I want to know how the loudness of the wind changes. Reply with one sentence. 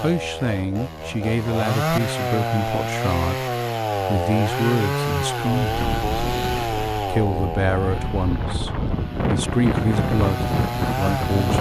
The volume of the wind goes up.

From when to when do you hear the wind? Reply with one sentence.
You can hear the wind from 5.5 to 11.5 s.